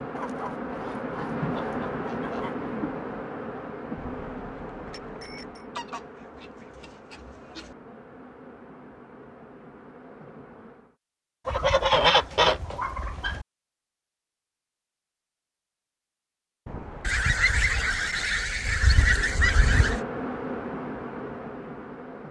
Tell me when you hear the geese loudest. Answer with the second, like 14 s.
12 s.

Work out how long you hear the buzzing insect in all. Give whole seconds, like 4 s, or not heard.
15 s.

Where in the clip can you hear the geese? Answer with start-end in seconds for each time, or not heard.
0.1-2.7, 5.8-7.8, 11.4-13.4, 17.0-20.0.